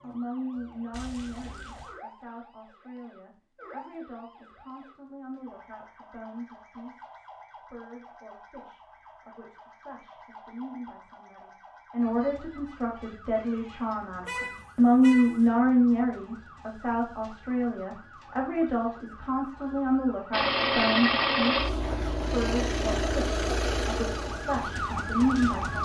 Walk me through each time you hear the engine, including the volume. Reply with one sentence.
You can hear the engine from 20.3 to 25.7 s, getting quieter.